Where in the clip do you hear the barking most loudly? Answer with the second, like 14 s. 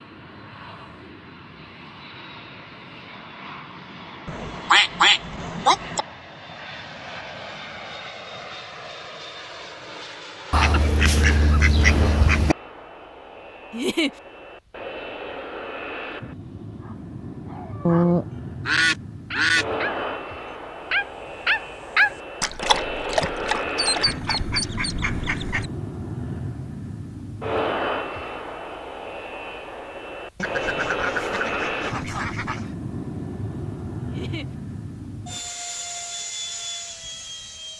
22 s.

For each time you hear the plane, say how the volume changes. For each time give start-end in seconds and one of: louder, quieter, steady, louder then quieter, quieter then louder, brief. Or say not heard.
0.0-37.7 louder.